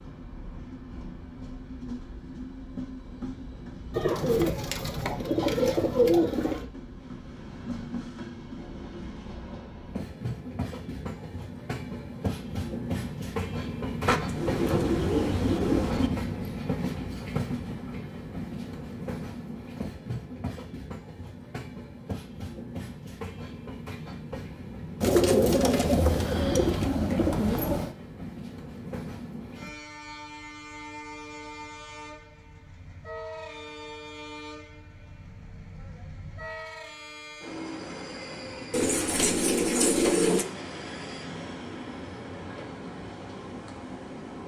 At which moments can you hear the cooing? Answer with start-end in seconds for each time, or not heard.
3.9-6.7, 14.1-16.1, 25.0-27.9, 38.7-40.5.